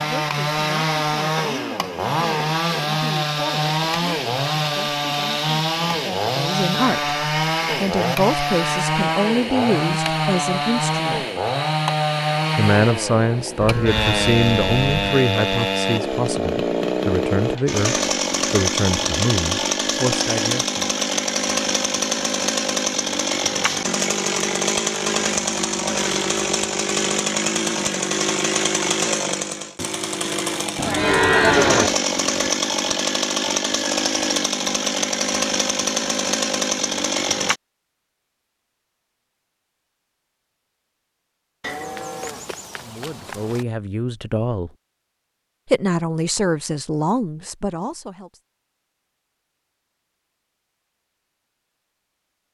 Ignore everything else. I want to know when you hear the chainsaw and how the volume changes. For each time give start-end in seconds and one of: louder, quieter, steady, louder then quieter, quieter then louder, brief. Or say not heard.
0.0-37.6 steady.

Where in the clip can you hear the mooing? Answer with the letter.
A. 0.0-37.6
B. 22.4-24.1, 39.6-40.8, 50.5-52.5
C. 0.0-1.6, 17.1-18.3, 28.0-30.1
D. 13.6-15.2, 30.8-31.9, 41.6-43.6
D.